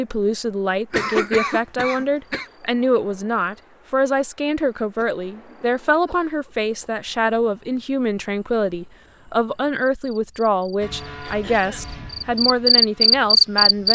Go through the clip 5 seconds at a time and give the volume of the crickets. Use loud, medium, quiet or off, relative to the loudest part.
quiet, quiet, loud.